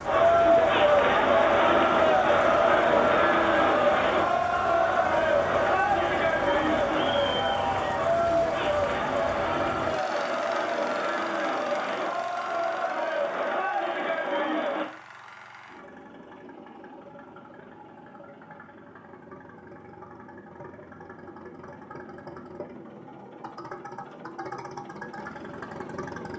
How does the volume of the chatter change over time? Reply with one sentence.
The volume of the chatter goes down.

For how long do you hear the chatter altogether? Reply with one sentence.
You can hear the chatter for 15 seconds altogether.